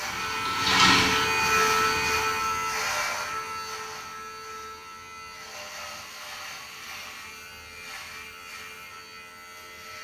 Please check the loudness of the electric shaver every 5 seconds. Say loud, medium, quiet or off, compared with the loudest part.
loud, quiet.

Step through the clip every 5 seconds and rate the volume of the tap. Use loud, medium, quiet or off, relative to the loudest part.
loud, off.